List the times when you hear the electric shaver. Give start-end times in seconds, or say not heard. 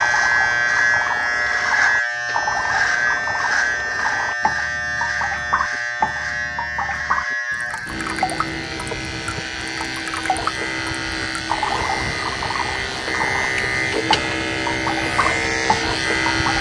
0.0-16.5.